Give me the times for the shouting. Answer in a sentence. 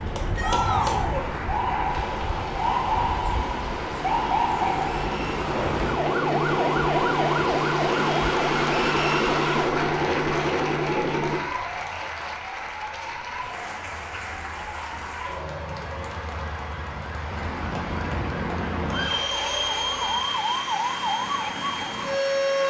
The shouting can be heard from 0.3 to 1.3 s.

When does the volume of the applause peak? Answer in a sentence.
The volume of the applause peaks at 9 seconds.